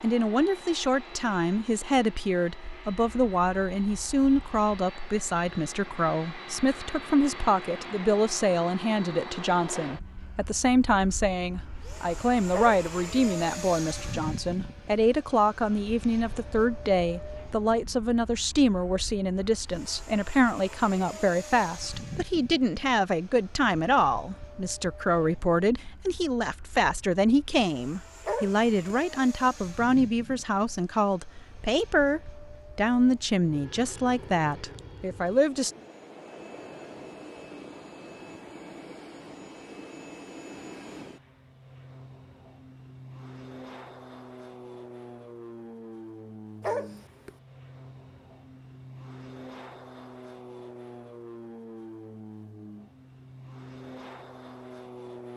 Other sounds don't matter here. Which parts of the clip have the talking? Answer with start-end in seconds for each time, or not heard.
0.0-35.7.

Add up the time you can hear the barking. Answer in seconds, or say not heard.
2 s.